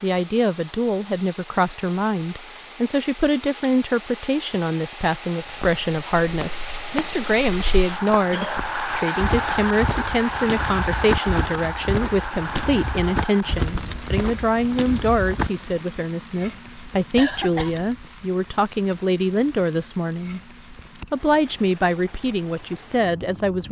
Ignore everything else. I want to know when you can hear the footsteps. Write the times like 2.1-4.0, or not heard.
5.4-15.5.